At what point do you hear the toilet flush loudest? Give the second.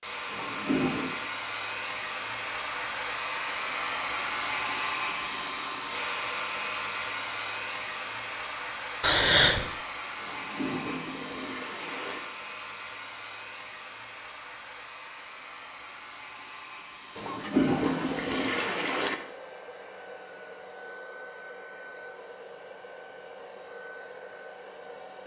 18 s.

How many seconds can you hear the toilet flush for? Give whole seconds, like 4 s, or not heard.
5 s.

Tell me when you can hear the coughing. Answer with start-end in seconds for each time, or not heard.
9.0-9.7.